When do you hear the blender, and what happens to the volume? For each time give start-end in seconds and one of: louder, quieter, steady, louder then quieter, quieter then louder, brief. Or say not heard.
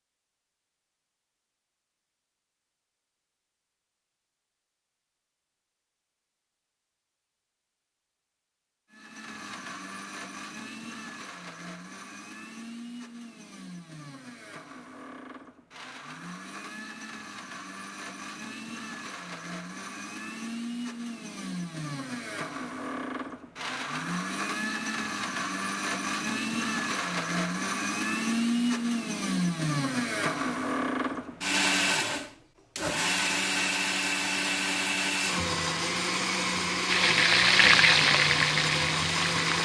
8.9-39.5 louder.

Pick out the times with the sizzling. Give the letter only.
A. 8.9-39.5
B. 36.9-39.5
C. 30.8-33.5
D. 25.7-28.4
B.